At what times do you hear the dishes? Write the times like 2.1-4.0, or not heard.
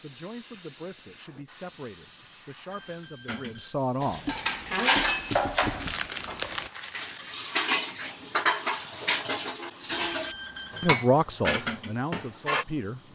3.2-12.7.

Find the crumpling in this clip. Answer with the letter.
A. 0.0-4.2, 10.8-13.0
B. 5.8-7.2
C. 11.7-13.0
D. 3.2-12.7
B.